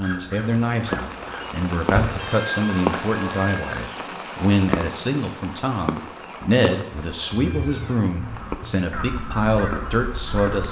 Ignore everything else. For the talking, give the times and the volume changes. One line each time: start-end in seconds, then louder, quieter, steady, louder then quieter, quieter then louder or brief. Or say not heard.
0.0-10.6 steady.